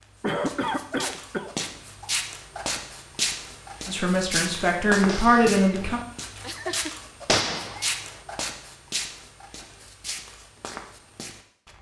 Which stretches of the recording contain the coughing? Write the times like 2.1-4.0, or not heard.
0.2-1.5.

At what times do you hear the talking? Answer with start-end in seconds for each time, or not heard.
3.9-6.0.